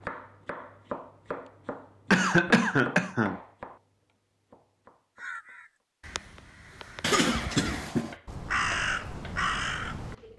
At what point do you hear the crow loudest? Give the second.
9 s.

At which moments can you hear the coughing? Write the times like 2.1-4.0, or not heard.
2.1-3.4, 7.0-8.2.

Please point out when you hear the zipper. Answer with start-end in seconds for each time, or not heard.
not heard.